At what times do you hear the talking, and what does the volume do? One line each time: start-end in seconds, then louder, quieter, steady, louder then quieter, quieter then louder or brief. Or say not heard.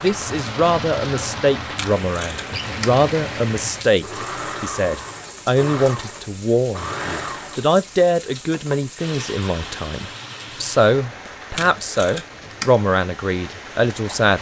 0.0-14.3 steady.